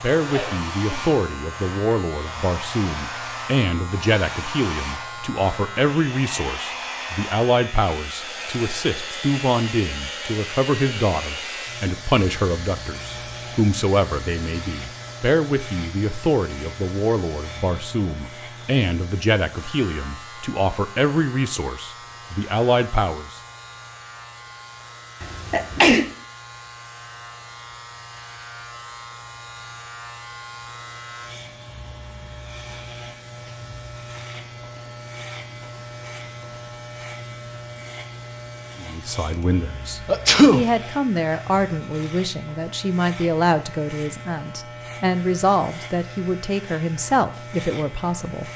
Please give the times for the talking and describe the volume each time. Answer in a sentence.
The talking can be heard from 0.0 to 23.4 s, at a steady volume; and from 38.8 to 48.5 s, at a steady volume.